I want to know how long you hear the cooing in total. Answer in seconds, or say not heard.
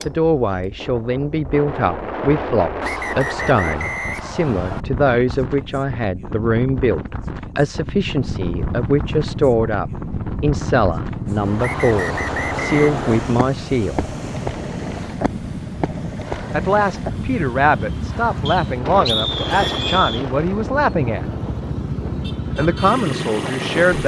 not heard.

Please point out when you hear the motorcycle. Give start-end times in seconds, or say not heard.
7.8-24.0.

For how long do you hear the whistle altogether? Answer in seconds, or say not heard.
5 s.